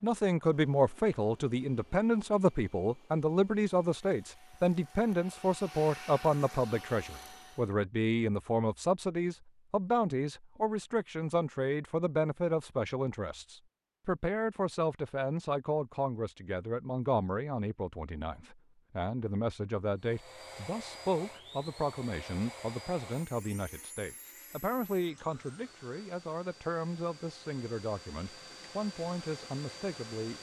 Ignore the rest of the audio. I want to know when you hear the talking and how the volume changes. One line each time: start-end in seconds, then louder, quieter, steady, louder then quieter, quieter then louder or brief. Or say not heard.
0.0-30.3 quieter.